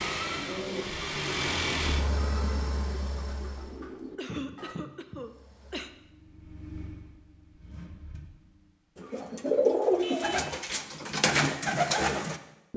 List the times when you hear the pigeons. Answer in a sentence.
You can hear the pigeons from 0.0 to 4.8 s and from 8.9 to 12.7 s.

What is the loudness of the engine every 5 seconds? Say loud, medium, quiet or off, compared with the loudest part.
loud, quiet, off.